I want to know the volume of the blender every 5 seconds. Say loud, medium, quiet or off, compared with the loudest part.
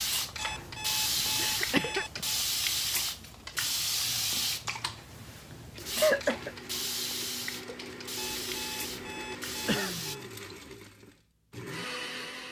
off, loud, loud.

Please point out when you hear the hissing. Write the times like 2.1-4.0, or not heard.
0.0-10.2.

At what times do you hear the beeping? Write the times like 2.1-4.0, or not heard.
0.3-2.4, 8.2-10.2.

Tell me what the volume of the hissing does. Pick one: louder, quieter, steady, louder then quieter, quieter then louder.
quieter.